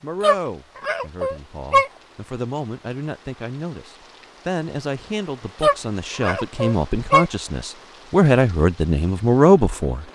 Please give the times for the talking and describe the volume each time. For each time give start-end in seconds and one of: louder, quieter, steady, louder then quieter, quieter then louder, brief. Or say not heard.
0.0-10.0 louder.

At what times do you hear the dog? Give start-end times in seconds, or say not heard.
0.2-1.9, 5.6-7.2.